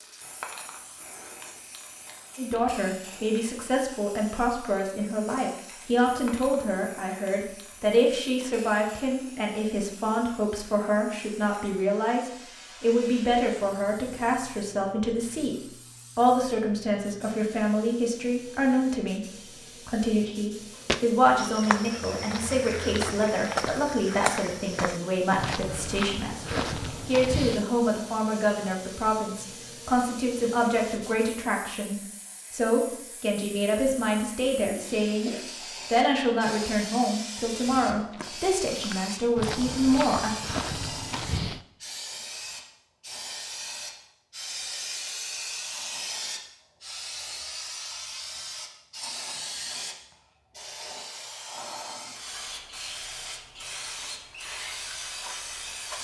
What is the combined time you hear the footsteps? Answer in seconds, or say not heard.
11 s.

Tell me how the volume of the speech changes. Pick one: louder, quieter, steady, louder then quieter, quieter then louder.
steady.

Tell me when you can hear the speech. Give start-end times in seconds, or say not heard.
2.4-35.3, 35.9-40.4.